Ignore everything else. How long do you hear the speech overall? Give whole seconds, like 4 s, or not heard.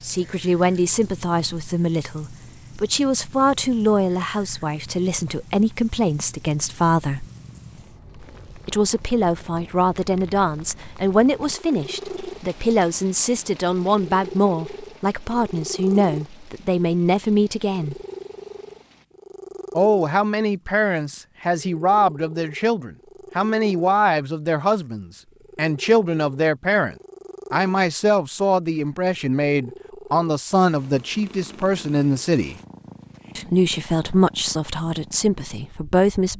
32 s.